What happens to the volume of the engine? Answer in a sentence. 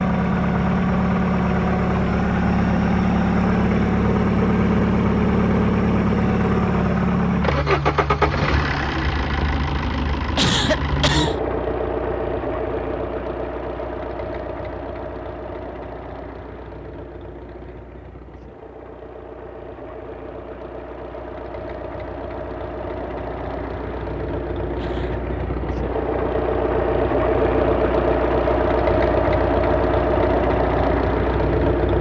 The volume of the engine goes down, then up.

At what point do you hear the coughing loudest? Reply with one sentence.
The loudest moment of the coughing is at 11 seconds.